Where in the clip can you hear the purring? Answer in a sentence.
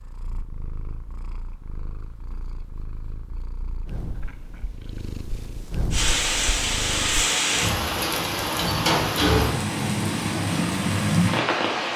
The purring can be heard from 0.0 to 7.2 s.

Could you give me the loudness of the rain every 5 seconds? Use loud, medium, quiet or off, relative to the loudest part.
off, loud, loud.